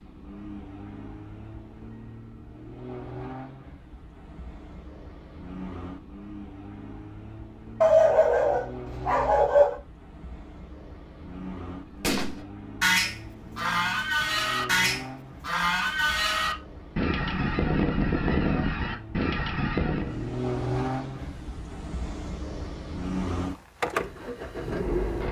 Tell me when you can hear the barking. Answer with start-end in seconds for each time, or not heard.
7.8-9.8.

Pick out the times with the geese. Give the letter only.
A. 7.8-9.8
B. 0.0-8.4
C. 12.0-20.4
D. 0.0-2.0
C.